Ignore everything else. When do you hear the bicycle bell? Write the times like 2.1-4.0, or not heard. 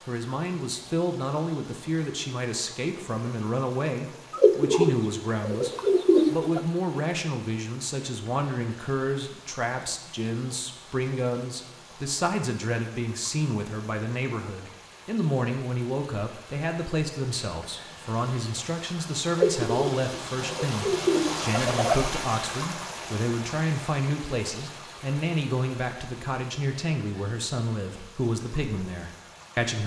not heard.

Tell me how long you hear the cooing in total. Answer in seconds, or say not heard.
5 s.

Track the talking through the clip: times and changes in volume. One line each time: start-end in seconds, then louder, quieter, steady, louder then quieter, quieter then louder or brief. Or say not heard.
0.1-29.8 steady.